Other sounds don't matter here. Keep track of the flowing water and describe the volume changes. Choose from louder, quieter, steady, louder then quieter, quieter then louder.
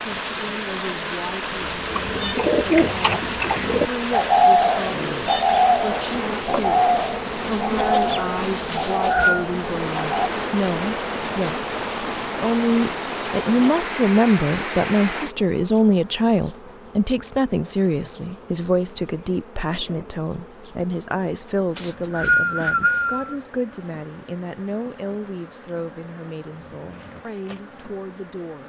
steady.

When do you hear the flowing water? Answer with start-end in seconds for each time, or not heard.
0.0-15.3.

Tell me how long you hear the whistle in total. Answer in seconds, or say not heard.
2 s.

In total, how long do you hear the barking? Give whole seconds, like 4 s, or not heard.
not heard.